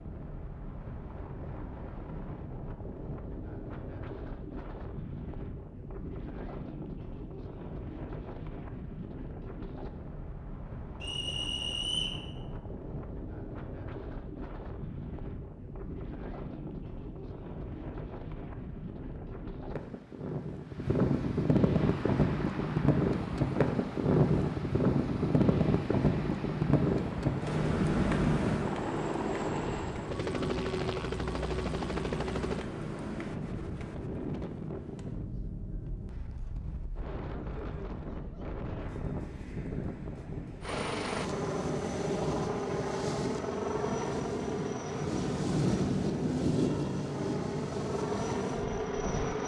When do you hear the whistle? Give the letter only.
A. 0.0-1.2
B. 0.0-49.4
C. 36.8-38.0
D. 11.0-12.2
D.